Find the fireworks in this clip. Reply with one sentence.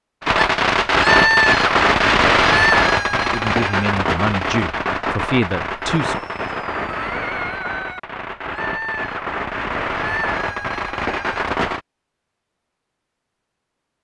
The fireworks can be heard from 0.2 to 11.8 s.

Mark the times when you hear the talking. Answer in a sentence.
The talking can be heard from 3.2 to 6.2 s.